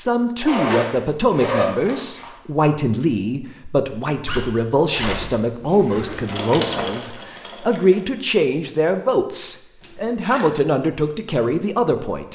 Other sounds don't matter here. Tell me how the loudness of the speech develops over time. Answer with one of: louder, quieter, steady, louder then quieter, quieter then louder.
steady.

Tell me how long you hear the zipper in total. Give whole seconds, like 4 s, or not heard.
5 s.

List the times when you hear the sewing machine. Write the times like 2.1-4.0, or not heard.
6.2-8.2.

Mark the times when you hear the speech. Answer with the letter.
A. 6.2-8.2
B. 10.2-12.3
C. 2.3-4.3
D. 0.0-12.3
D.